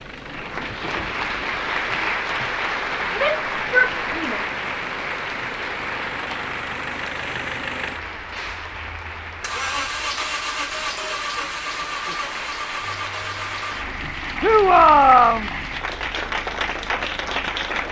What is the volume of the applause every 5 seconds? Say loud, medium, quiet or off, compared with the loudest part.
loud, medium, medium, loud.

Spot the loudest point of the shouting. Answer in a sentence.
The loudest moment of the shouting is at 15 seconds.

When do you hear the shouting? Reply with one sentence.
The shouting can be heard from 3.1 to 4.4 s and from 14.4 to 15.5 s.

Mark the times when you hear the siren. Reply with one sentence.
The siren can't be heard in this clip.